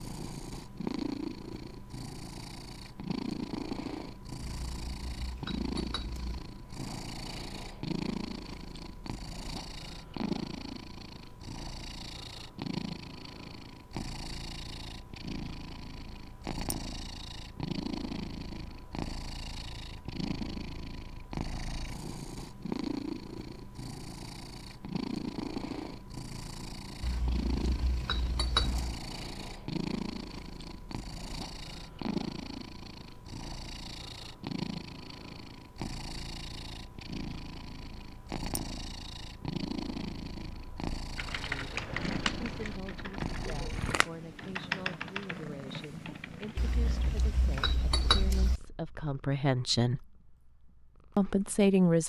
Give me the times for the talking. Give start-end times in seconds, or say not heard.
41.4-50.0, 51.1-52.0.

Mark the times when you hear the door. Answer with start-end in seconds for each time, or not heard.
not heard.